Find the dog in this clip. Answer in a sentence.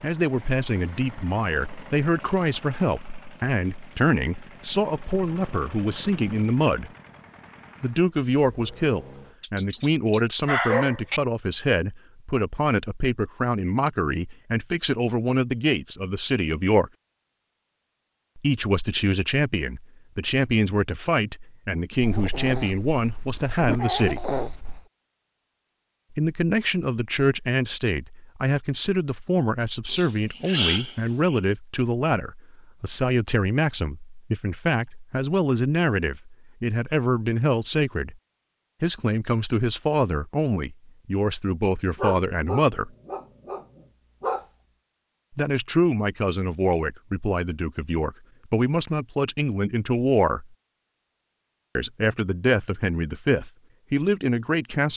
The dog can be heard from 9.4 to 11.2 s, from 22.0 to 24.9 s, from 29.9 to 31.4 s and from 42.0 to 44.5 s.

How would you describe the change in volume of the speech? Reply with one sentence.
The loudness of the speech stays about the same.